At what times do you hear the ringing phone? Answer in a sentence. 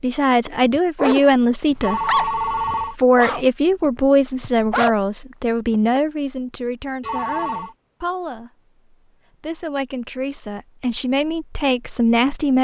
The ringing phone can be heard from 1.8 to 3.0 s and from 7.0 to 7.8 s.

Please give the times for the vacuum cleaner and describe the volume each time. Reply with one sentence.
The vacuum cleaner can't be heard in this clip.